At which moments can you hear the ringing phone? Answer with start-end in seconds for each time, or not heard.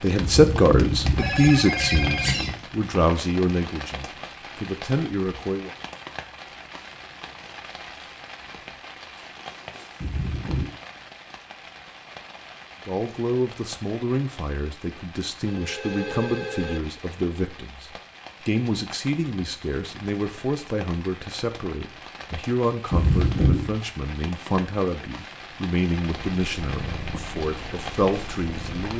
1.1-2.5, 15.4-16.8.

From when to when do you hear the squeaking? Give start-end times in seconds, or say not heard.
0.2-2.5, 10.0-10.7, 22.9-23.6.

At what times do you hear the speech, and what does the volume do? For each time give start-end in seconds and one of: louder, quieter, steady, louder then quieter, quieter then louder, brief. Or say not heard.
0.0-5.7 quieter
12.8-28.9 steady.